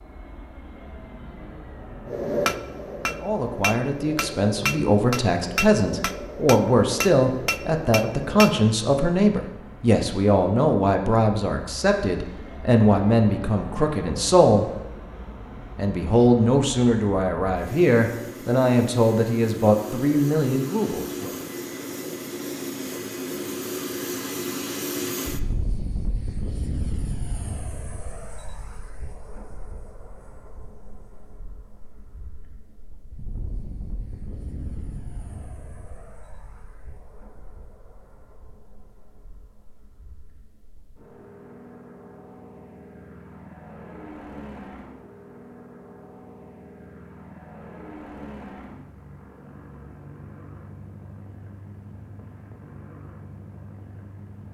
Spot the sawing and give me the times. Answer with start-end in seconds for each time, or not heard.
not heard.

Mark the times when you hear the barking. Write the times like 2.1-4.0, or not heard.
not heard.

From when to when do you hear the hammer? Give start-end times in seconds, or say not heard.
2.0-8.7.